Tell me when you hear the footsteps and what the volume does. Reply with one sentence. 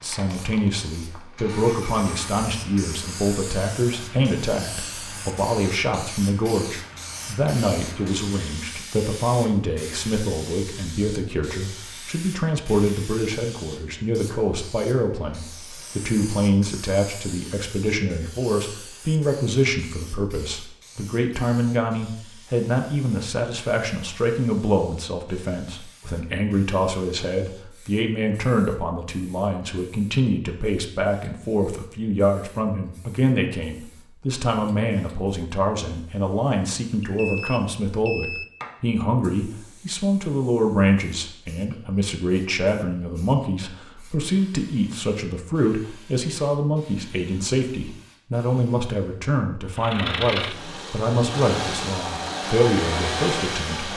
You can't hear the footsteps here.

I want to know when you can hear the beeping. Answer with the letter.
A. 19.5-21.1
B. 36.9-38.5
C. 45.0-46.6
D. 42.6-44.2
B.